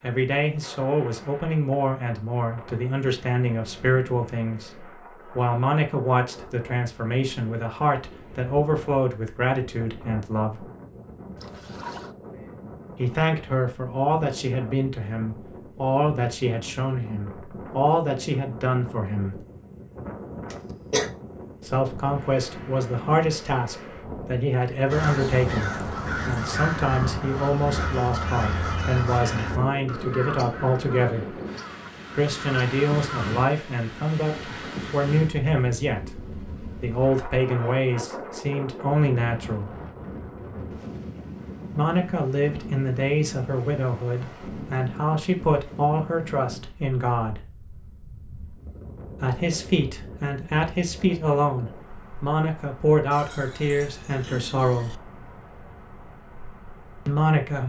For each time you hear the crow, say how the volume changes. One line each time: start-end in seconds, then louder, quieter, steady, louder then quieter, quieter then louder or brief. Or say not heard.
24.9-33.4 quieter.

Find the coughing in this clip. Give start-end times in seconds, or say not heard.
20.5-21.1.